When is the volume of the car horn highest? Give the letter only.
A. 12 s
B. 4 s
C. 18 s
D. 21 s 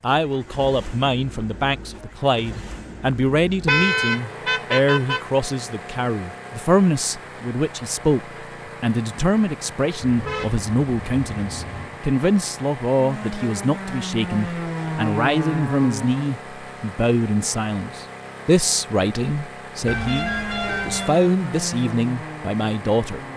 B.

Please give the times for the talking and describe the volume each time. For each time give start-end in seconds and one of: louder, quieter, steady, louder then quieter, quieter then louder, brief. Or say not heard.
0.0-23.2 steady.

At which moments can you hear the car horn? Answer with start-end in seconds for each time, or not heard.
3.6-5.2, 10.0-12.0, 19.9-21.1.